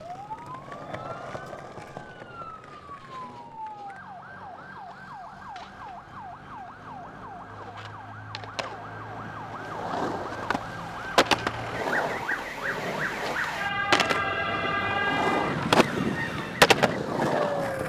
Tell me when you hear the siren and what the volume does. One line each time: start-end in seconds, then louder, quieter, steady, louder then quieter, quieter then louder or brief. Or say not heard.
0.0-17.8 louder.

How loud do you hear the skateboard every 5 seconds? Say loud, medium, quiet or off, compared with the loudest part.
quiet, quiet, medium, loud.